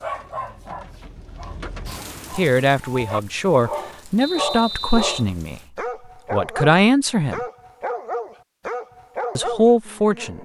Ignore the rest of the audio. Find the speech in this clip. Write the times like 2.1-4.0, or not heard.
2.3-5.6, 6.3-7.4, 9.3-10.4.